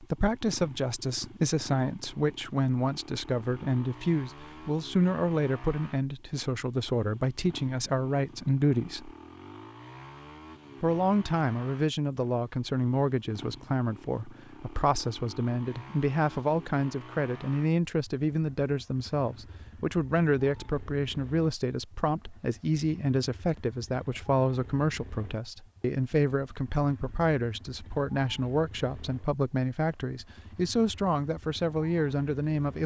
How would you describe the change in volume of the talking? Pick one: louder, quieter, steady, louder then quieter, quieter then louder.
steady.